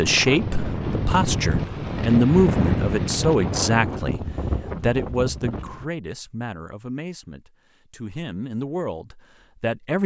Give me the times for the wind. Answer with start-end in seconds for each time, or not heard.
0.0-5.8.